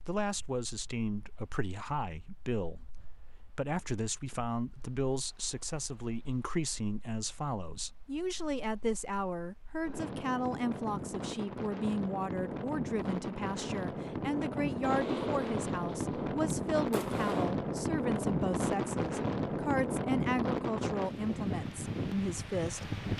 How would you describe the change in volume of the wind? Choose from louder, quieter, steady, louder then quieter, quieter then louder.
louder.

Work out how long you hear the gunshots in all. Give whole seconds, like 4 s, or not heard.
3 s.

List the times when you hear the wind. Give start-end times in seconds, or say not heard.
0.0-23.1.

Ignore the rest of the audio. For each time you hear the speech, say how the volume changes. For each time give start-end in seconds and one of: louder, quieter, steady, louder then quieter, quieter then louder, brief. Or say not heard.
0.1-22.9 steady.